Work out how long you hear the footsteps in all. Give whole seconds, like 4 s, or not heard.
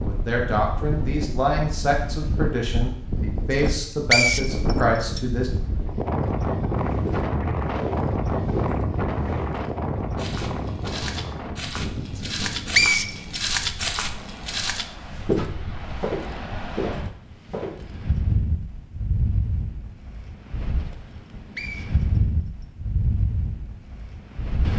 12 s.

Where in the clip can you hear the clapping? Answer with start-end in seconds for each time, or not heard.
not heard.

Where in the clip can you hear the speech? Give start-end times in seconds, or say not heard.
0.0-5.5.